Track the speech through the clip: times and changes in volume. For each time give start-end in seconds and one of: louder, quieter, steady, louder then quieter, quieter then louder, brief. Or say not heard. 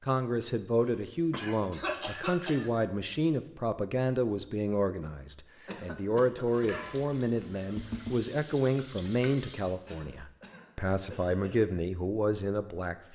0.0-13.1 steady.